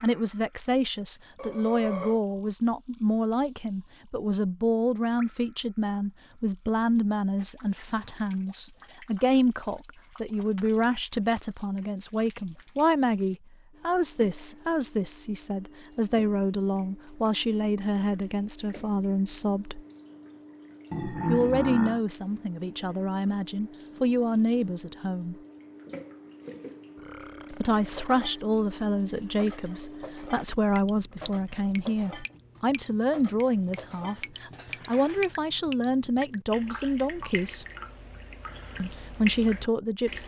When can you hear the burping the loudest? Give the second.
21 s.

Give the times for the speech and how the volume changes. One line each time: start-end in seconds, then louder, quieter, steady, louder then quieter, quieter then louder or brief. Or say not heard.
0.0-19.8 steady
21.2-25.4 quieter then louder
27.5-37.6 steady
38.8-40.2 brief.